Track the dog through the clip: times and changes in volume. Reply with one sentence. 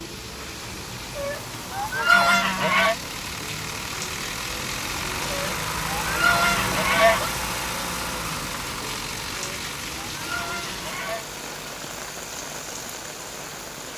The dog can't be heard in this clip.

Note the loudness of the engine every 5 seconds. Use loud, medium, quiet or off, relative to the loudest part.
medium, loud, medium.